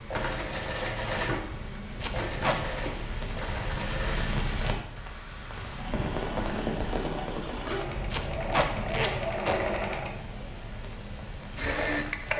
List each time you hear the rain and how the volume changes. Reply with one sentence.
You can hear the rain from 0.0 to 12.3 s, getting louder then quieter.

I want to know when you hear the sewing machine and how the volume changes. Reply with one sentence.
The sewing machine can be heard from 0.0 to 12.3 s, getting quieter then louder.